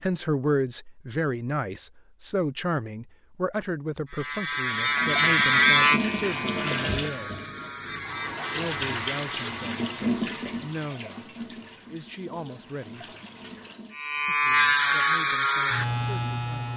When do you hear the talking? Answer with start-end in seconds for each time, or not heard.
0.0-7.3, 8.6-13.1, 14.2-16.7.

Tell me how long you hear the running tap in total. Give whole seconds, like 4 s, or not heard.
9 s.